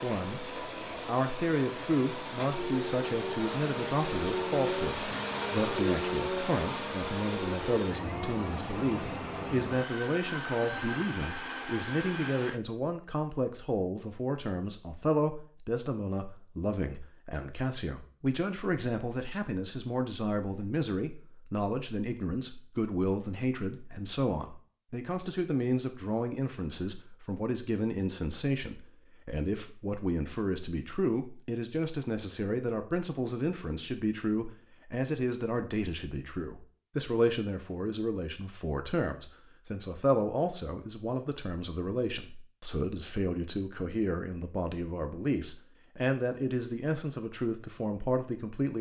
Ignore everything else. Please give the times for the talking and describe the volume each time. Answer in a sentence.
The talking can be heard from 0.0 to 48.7 s, at a steady volume.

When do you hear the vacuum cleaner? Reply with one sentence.
The vacuum cleaner can be heard from 0.0 to 12.6 s.